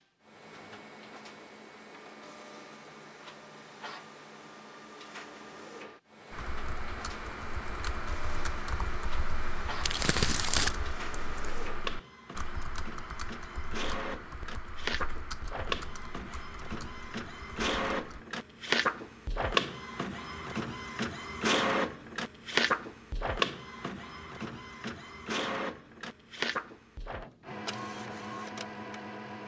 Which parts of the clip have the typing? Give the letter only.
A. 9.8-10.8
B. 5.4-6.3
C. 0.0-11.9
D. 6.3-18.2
D.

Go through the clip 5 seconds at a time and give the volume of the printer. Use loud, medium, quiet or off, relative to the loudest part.
quiet, quiet, medium, loud, loud, medium.